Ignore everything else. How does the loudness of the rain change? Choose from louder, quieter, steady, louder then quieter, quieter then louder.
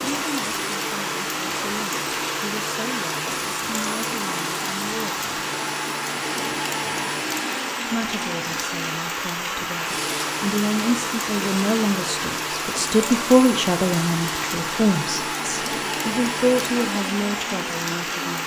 steady.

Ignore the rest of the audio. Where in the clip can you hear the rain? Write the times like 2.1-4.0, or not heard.
0.0-18.4.